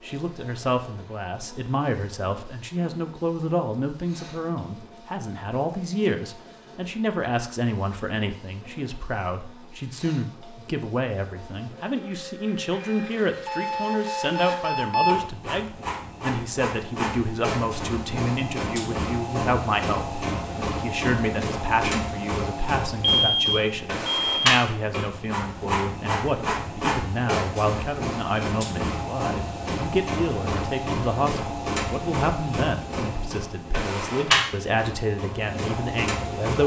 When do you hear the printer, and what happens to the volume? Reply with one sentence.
The printer can be heard from 0.0 to 36.6 s, getting louder.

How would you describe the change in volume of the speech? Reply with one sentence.
The loudness of the speech stays about the same.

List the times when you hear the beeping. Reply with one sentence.
You can hear the beeping from 13.4 to 15.2 s and from 23.0 to 24.4 s.